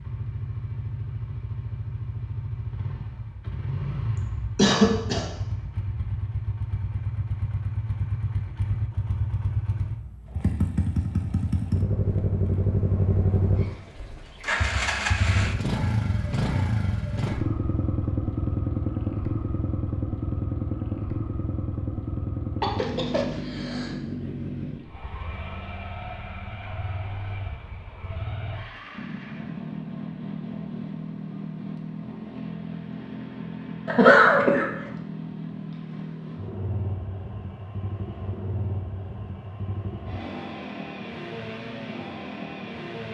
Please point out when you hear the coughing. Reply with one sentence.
The coughing can be heard from 4.2 to 5.2 s, from 22.6 to 23.9 s and from 33.9 to 34.6 s.